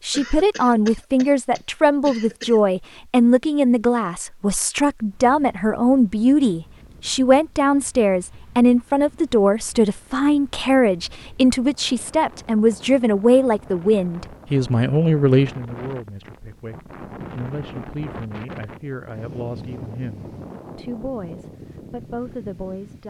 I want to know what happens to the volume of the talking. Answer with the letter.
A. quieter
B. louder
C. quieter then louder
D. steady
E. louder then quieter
A.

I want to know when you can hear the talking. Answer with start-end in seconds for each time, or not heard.
0.0-23.0.